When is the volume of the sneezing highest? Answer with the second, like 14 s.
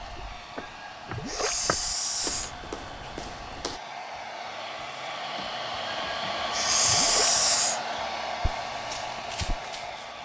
7 s.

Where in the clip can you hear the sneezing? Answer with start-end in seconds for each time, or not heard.
0.6-2.5, 5.8-7.8.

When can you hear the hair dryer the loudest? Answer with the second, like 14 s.
7 s.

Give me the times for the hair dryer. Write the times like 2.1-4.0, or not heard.
0.0-10.2.